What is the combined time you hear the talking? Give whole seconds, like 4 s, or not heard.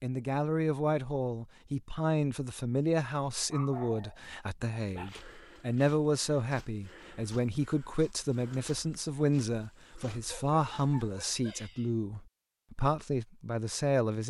14 s.